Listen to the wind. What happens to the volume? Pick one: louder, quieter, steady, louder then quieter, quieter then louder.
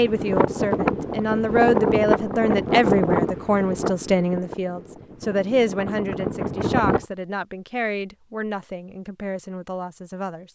quieter then louder.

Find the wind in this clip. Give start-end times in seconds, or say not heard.
0.0-7.0.